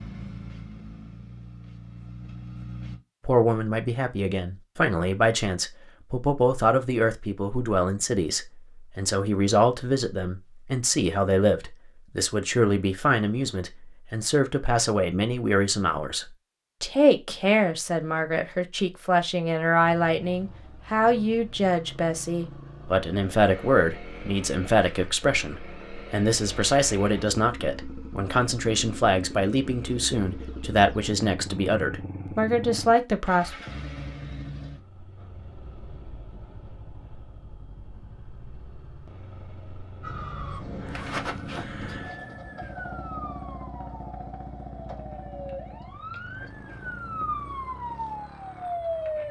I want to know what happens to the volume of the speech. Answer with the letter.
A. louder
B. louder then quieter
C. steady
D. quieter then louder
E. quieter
C.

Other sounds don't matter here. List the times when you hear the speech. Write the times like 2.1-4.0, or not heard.
3.2-33.5.